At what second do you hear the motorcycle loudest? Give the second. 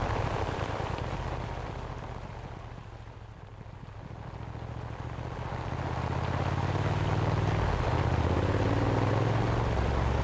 9 s.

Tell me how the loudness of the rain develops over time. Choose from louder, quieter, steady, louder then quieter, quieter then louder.
quieter then louder.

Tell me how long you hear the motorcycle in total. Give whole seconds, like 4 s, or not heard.
10 s.